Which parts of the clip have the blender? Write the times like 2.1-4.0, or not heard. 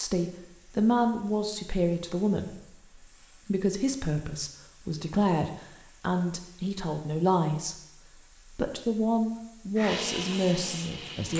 9.8-11.3.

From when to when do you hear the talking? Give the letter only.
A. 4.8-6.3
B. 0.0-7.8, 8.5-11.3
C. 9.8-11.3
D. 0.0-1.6
B.